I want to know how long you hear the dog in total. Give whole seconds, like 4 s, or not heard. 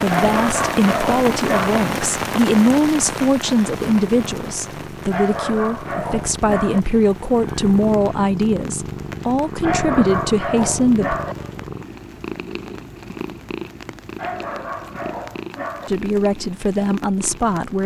7 s.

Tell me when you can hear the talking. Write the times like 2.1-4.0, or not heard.
0.0-11.2, 15.8-17.8.